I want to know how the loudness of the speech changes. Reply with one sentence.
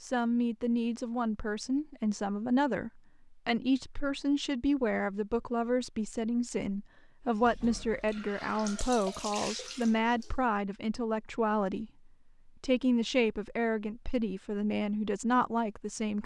The volume of the speech stays about the same.